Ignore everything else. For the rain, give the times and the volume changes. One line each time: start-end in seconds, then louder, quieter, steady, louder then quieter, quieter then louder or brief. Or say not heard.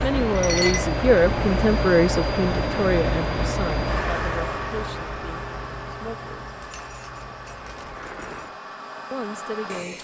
0.0-8.6 quieter.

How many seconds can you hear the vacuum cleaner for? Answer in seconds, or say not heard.
10 s.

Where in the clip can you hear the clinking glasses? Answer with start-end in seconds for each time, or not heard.
0.3-0.8, 6.6-8.5.